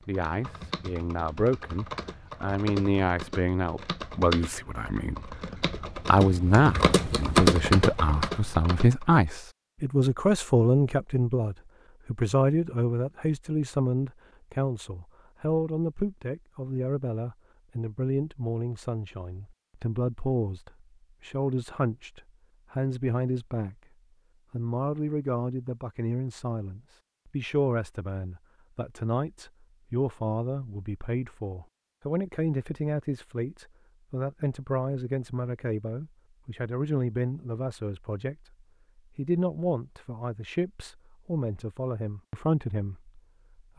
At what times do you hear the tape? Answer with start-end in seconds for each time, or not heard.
not heard.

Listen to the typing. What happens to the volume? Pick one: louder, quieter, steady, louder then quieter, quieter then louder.
louder.